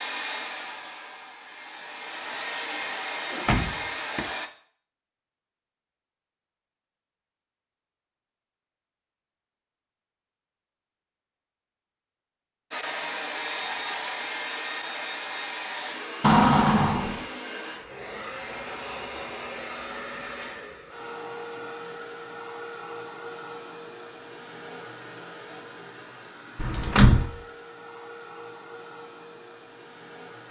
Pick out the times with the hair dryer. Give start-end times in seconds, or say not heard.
0.0-4.5, 12.7-30.4.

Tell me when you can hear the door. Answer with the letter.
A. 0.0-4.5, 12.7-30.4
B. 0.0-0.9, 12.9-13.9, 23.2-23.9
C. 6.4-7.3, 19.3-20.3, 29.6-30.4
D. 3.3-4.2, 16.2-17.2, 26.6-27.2
D.